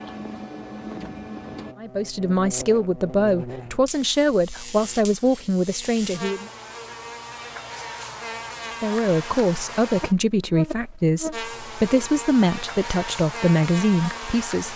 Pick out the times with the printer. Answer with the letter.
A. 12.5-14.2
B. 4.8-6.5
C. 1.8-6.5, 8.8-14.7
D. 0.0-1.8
D.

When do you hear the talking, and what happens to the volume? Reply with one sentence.
The talking can be heard from 1.8 to 6.5 s, at a steady volume; and from 8.8 to 14.7 s, at a steady volume.